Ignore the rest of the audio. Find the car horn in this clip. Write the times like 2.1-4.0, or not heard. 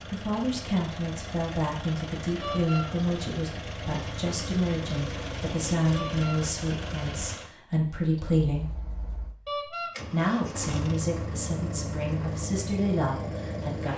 2.4-2.9, 5.9-6.4, 9.4-9.9.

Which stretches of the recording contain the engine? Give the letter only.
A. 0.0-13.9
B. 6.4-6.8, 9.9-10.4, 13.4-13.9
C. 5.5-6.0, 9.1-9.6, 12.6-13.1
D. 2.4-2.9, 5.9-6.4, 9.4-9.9
A.